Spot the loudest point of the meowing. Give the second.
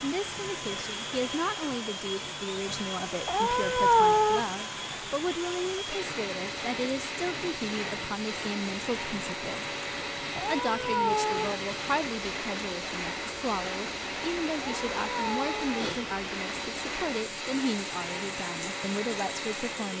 4 s.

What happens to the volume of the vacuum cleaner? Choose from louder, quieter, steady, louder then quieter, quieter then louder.
steady.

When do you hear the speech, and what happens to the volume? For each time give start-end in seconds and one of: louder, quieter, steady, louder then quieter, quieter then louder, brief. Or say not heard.
0.0-19.9 steady.